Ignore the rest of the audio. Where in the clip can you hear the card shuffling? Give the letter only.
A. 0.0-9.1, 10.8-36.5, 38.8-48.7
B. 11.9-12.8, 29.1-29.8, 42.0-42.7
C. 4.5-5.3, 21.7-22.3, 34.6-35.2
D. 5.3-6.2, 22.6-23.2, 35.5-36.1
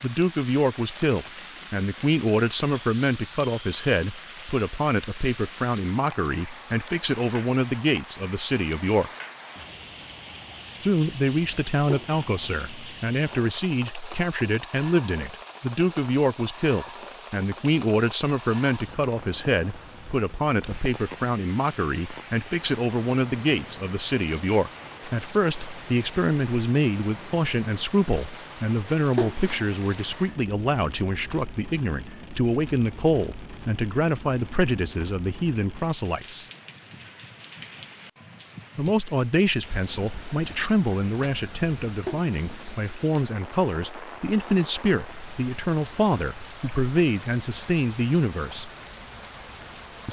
B.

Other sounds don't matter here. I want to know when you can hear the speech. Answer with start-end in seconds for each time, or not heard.
0.0-9.1, 10.8-36.5, 38.8-48.7.